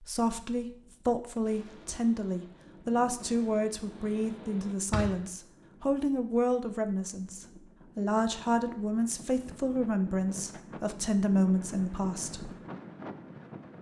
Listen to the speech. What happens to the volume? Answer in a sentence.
The volume of the speech stays about the same.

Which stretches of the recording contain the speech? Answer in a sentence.
The speech can be heard from 0.0 to 12.5 s.